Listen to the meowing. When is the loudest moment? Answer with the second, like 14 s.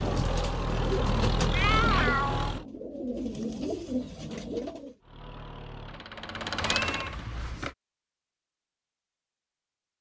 2 s.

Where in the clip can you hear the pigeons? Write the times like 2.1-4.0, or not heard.
0.0-5.0.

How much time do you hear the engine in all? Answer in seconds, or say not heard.
5 s.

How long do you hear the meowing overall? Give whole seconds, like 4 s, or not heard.
2 s.